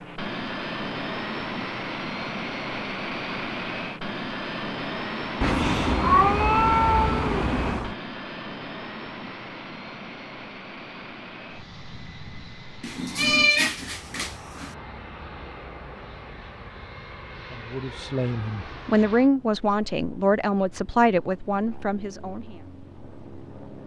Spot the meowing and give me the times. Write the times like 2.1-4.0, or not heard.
5.4-8.0, 12.8-14.7.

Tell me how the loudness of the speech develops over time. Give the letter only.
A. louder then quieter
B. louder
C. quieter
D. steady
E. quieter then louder
A.